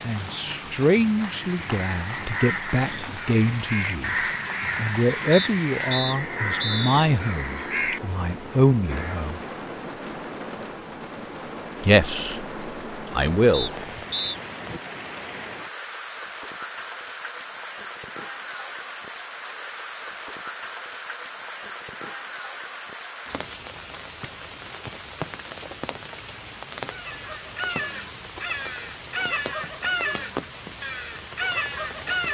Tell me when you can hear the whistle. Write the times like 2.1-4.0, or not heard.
5.3-7.0, 13.5-14.4, 24.2-24.9.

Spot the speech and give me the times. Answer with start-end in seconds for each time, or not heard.
0.0-4.2, 4.8-9.4, 11.8-13.7.